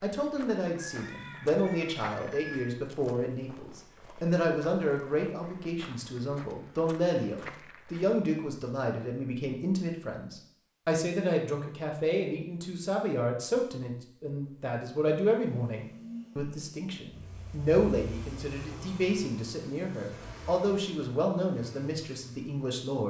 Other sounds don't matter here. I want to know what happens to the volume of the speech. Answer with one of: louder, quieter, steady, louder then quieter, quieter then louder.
steady.